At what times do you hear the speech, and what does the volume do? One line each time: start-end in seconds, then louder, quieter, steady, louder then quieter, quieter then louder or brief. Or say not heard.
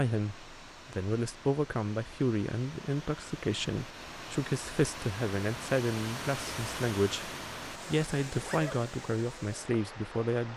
0.0-10.5 steady.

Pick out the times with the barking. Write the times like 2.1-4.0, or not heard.
not heard.